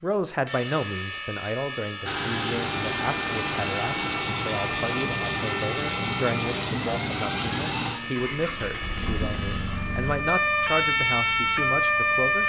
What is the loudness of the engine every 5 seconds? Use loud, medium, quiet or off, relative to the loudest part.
loud, loud, quiet.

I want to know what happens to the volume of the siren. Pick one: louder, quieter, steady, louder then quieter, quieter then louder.
louder.